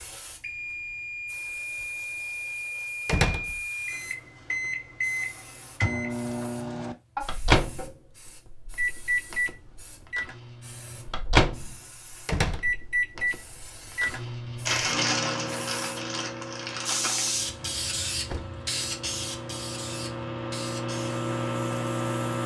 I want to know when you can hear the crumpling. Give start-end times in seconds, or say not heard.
14.7-17.3.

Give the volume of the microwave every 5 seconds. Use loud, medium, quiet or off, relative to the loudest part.
medium, loud, loud, medium, loud.